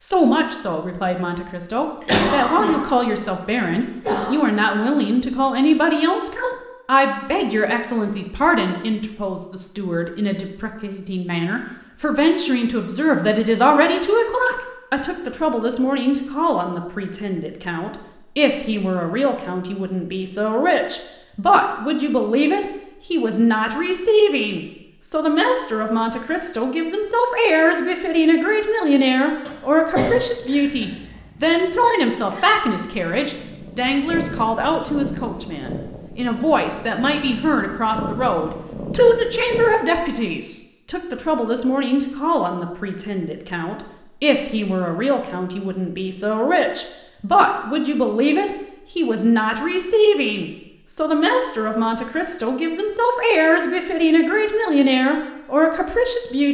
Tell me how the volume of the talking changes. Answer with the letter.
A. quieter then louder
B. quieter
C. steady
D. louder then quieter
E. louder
C.